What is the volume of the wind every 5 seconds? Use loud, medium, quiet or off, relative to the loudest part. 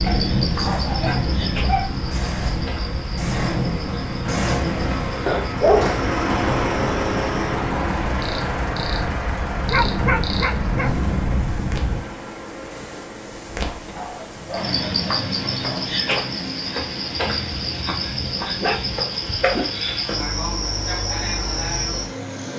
loud, medium, loud, off, off.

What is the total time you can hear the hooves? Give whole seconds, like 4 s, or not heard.
not heard.